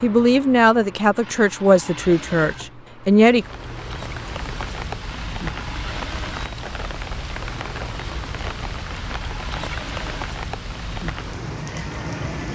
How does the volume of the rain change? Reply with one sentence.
The loudness of the rain stays about the same.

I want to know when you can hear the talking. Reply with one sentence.
You can hear the talking from 0.0 to 3.5 s.